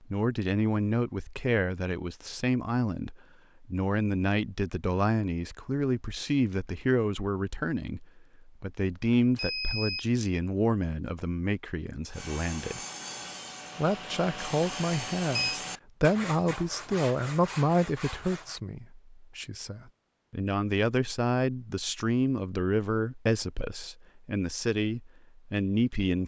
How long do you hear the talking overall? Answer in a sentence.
The talking can be heard for 25 seconds in total.